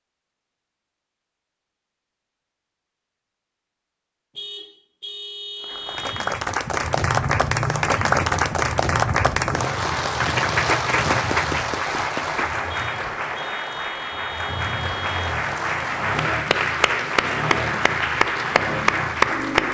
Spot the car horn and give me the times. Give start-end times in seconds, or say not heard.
4.3-6.3, 12.7-15.2.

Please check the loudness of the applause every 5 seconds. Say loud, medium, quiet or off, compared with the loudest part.
off, loud, loud, loud.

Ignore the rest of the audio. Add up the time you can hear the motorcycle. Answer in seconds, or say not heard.
13 s.